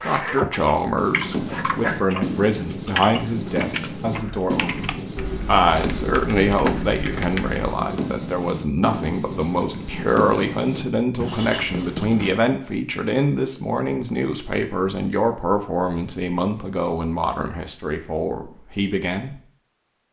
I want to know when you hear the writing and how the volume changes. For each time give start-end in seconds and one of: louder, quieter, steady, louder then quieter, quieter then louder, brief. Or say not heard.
0.9-12.3 steady.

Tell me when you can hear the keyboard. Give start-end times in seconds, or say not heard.
0.0-7.7.